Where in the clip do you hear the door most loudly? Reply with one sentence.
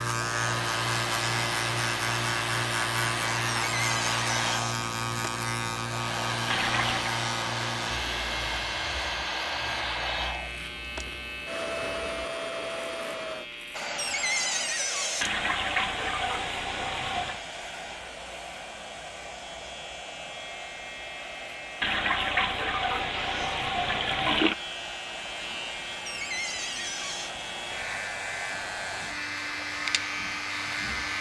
The volume of the door peaks at 14 seconds.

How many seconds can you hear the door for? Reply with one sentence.
You can hear the door for 4 seconds altogether.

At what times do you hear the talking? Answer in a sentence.
You can't hear the talking here.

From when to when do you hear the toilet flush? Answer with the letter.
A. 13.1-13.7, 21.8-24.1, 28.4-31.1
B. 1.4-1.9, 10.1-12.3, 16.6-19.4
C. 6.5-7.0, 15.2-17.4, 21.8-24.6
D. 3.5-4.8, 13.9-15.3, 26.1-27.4
C.